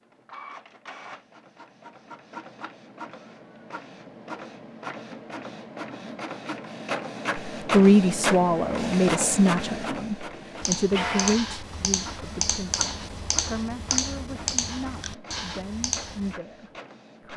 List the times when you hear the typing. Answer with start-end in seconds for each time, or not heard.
10.6-16.4.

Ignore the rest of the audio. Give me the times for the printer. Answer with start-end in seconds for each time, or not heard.
0.0-17.3.